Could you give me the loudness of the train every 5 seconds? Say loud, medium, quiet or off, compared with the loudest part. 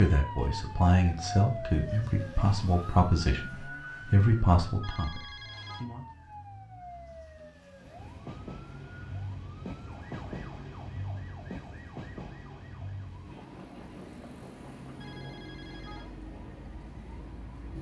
off, loud, loud, medium.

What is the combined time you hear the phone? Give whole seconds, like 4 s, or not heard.
2 s.